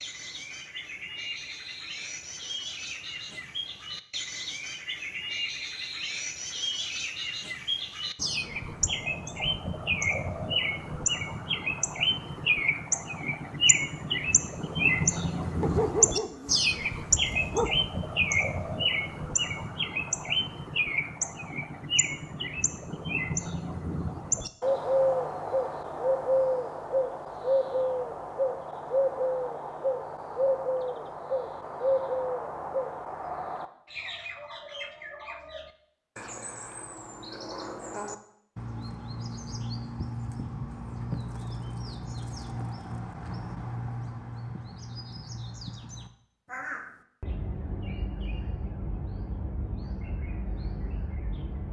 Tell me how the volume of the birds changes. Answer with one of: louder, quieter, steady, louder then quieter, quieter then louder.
louder then quieter.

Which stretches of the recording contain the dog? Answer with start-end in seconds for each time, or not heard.
15.6-17.9.